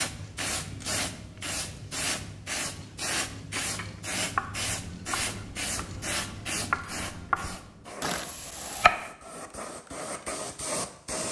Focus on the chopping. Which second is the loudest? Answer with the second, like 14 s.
9 s.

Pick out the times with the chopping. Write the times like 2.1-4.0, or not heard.
3.5-9.1.